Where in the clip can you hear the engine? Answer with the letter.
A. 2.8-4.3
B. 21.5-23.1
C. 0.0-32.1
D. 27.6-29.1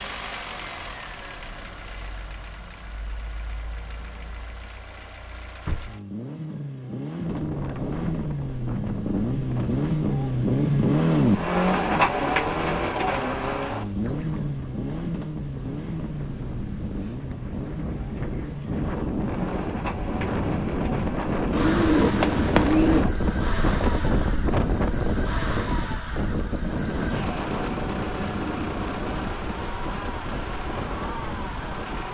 C.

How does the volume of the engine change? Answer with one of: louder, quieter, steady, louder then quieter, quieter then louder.
louder then quieter.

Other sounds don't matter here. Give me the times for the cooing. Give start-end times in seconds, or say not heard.
21.5-23.1.